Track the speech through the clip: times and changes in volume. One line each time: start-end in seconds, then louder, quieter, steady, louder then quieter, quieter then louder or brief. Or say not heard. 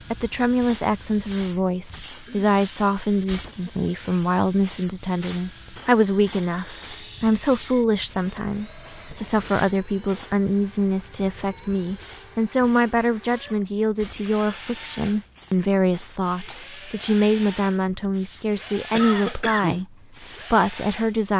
0.1-19.9 steady
20.5-21.3 brief.